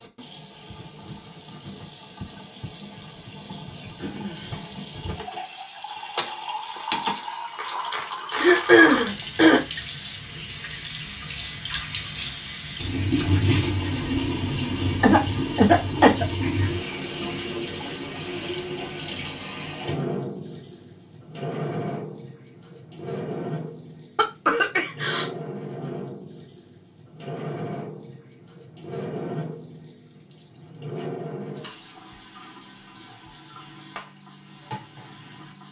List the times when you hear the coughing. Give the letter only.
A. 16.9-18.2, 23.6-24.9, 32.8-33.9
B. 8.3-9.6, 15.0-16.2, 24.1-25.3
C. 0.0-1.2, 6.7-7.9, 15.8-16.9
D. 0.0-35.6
B.